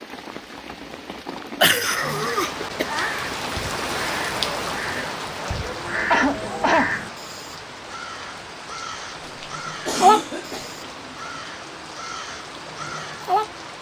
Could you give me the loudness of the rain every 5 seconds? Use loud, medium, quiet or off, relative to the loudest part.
loud, medium, medium.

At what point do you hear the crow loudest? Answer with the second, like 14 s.
10 s.